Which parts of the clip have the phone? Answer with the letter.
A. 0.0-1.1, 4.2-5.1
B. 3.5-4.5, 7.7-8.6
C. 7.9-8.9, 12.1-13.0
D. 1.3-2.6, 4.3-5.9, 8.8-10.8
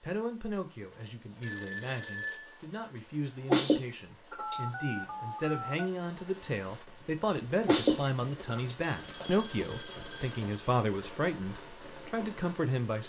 D.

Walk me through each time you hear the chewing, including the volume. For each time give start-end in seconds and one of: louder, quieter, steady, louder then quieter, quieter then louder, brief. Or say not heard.
not heard.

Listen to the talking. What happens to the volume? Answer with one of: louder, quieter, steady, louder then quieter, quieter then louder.
louder.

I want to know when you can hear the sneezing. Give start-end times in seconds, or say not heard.
3.5-4.5, 7.7-8.6.